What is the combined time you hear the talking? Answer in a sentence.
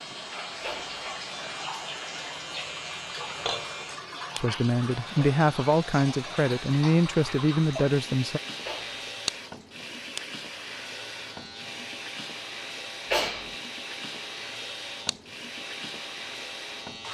The talking can be heard for 4 seconds in total.